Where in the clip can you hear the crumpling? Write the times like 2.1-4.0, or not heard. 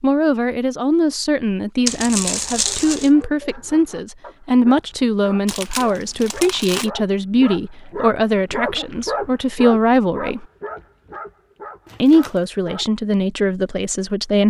1.9-3.1, 5.5-6.9, 11.8-12.4.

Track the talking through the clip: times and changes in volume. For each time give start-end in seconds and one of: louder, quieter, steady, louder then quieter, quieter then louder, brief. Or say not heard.
0.0-10.4 steady
12.0-14.4 brief.